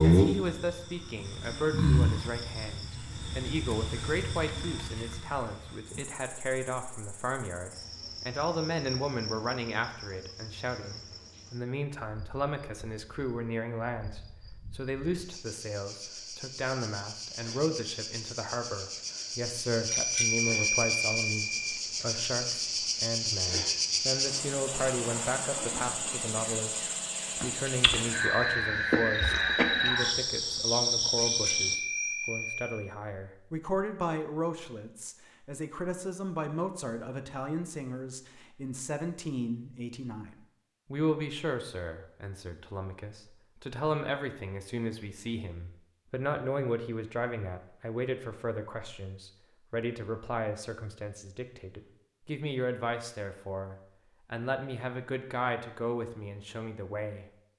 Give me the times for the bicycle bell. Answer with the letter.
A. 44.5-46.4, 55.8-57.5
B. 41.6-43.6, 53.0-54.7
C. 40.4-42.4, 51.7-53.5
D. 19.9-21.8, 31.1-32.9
D.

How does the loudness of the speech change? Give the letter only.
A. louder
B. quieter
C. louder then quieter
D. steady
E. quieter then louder
D.